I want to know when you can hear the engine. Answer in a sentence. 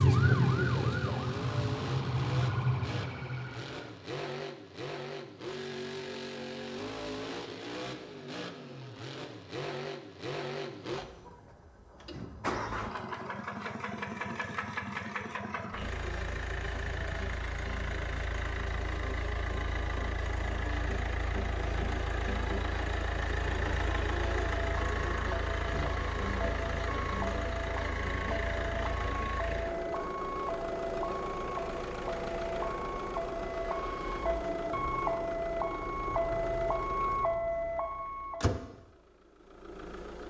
You can hear the engine from 0.0 to 40.2 s.